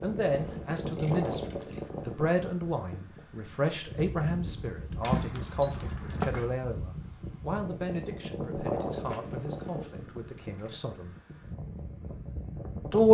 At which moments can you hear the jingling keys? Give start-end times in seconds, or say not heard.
0.2-1.8, 5.0-6.5, 9.1-10.8.